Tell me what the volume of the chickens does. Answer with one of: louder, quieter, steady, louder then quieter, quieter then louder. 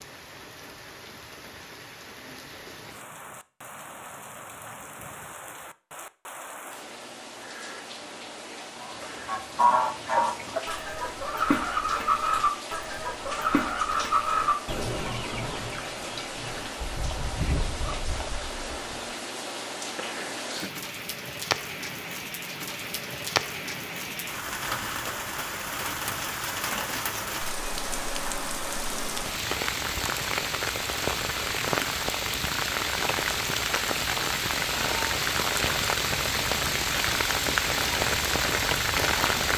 quieter.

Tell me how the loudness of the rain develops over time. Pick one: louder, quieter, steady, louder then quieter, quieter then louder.
louder.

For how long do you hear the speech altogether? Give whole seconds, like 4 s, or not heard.
not heard.